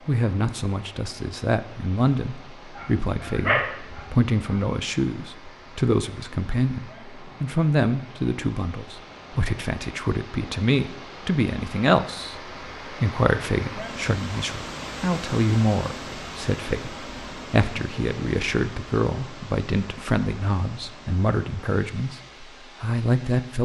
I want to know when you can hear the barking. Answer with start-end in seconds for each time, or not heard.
2.8-4.6.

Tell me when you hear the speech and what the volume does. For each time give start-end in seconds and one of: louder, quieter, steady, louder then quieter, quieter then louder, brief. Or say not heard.
0.1-23.6 steady.